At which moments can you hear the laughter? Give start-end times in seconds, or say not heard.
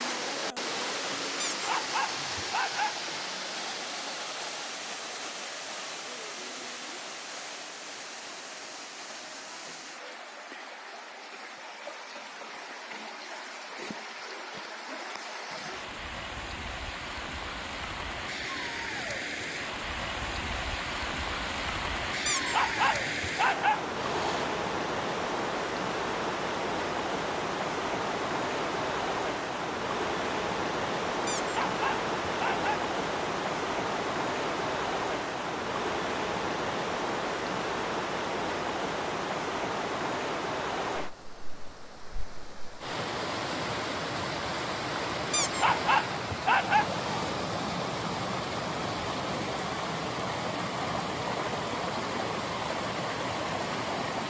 not heard.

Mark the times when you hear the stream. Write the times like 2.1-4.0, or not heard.
0.0-54.2.